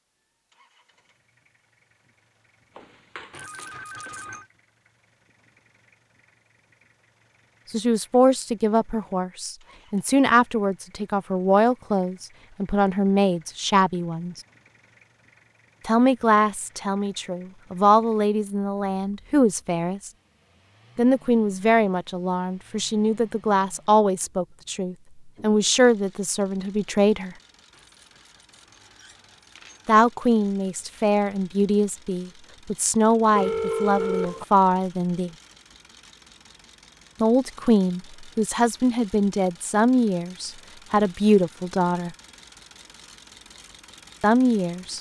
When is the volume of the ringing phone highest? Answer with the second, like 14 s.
34 s.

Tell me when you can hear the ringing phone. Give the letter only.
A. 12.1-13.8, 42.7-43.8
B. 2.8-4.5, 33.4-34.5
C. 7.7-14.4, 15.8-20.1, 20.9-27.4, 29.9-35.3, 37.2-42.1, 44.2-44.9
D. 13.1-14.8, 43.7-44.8
B.